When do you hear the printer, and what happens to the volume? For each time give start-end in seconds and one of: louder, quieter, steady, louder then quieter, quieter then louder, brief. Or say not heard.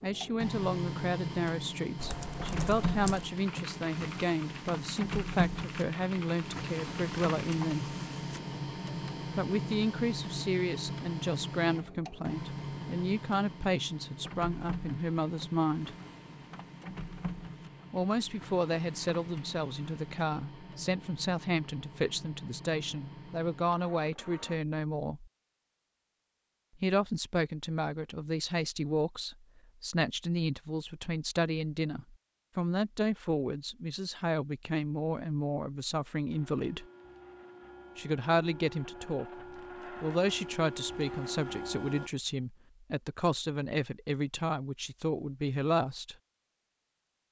0.0-24.6 quieter
36.3-42.1 louder.